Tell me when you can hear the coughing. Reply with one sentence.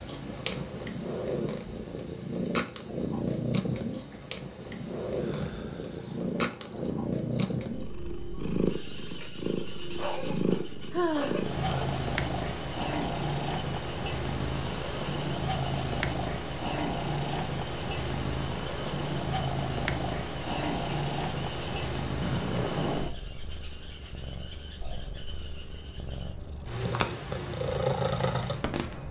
The coughing can be heard from 9.9 to 11.9 s.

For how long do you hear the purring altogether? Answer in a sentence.
The purring can be heard for 29 seconds in total.